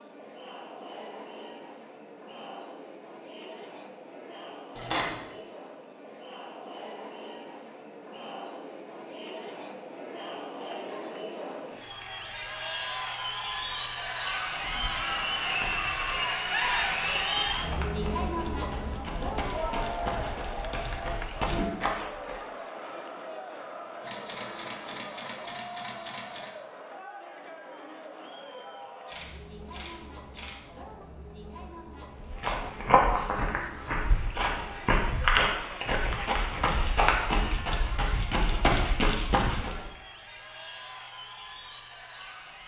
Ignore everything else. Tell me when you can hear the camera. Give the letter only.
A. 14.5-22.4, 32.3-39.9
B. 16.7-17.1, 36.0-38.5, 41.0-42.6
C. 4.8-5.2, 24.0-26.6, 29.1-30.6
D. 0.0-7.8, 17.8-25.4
C.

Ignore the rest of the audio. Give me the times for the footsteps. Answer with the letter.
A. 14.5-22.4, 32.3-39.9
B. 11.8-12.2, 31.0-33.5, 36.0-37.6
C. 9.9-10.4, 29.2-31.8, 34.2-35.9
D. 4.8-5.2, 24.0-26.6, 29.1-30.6
A.